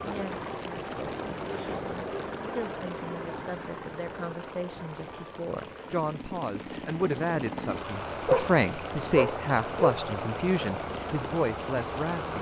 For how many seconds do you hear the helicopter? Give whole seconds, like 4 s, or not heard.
12 s.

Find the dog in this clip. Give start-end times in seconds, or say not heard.
8.2-9.9.